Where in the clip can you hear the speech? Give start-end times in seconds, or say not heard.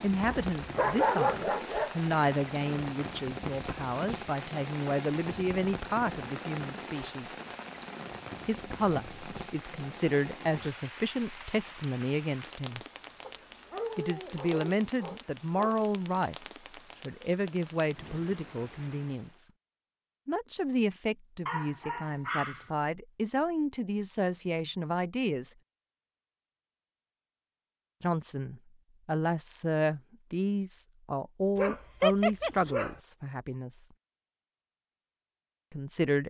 0.0-7.3, 8.4-12.8, 13.9-19.5, 20.2-25.6, 28.0-33.9, 35.7-36.2.